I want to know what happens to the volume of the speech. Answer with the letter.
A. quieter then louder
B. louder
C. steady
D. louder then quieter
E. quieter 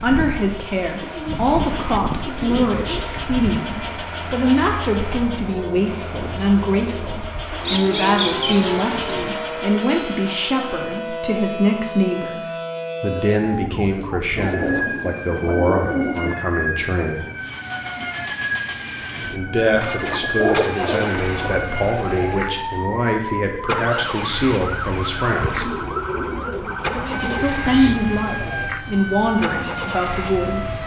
C.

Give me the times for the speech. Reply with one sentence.
You can hear the speech from 0.0 to 17.3 s, from 19.3 to 25.7 s and from 27.1 to 30.8 s.